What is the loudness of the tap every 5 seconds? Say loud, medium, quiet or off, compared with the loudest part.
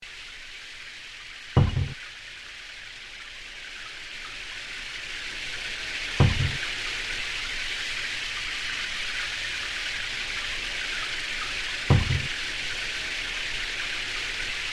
medium, loud, loud.